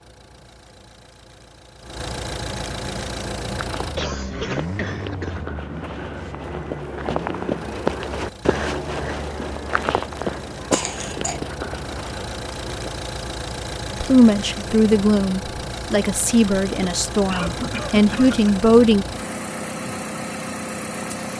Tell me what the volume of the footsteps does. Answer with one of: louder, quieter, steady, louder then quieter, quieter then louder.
louder then quieter.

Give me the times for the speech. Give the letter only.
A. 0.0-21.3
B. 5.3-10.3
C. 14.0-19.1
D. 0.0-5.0
C.